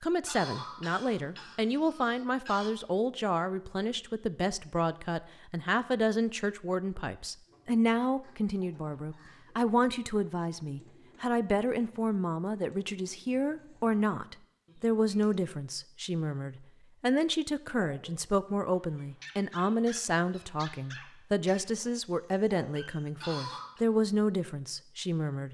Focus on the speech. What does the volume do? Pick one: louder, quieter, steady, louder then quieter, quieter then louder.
steady.